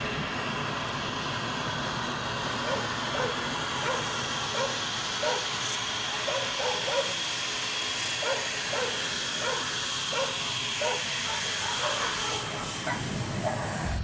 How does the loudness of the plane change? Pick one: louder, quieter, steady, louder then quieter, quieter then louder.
steady.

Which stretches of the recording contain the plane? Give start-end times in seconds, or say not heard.
0.0-13.9.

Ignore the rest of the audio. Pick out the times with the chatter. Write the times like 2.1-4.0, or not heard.
not heard.